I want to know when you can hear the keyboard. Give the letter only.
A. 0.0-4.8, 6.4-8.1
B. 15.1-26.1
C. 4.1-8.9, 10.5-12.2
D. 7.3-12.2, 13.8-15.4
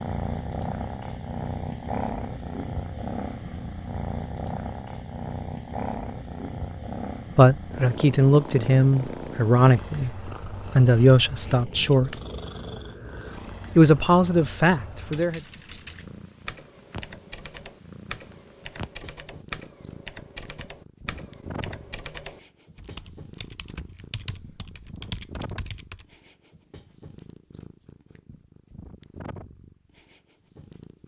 B.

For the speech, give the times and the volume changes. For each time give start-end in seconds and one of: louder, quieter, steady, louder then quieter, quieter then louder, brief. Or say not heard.
7.3-12.2 steady
13.8-15.4 brief.